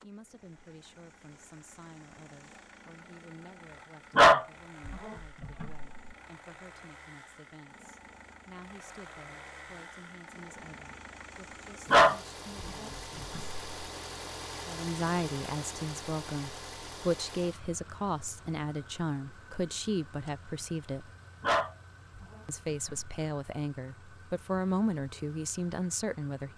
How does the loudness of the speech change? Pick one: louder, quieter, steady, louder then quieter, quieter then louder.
louder.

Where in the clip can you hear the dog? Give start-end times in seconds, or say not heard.
4.2-5.8, 11.9-13.6, 21.4-22.9.